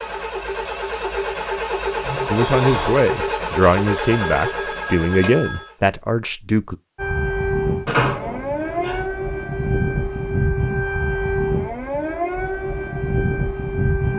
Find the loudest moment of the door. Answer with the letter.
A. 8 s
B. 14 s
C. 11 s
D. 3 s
A.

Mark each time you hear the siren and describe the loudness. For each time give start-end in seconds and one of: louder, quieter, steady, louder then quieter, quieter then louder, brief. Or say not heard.
7.0-14.1 steady.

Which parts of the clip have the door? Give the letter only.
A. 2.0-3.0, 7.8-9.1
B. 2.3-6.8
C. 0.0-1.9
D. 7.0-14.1
A.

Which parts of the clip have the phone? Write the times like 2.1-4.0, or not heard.
3.9-5.7.